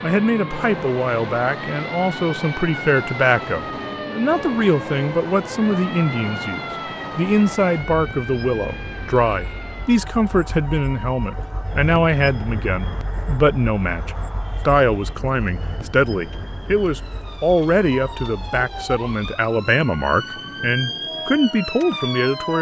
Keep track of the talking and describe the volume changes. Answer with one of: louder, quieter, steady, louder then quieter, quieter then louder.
steady.